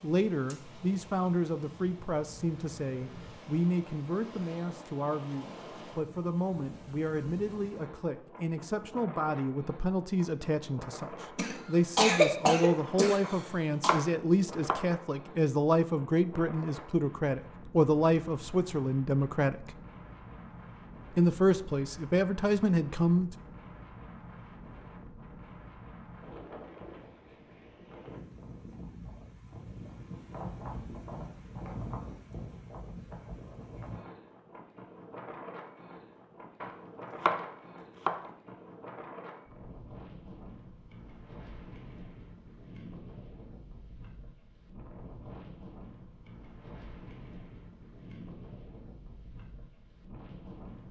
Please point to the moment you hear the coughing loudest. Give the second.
12 s.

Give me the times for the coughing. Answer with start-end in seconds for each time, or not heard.
11.3-13.9.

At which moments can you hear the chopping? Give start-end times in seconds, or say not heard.
13.2-14.9, 36.6-38.3.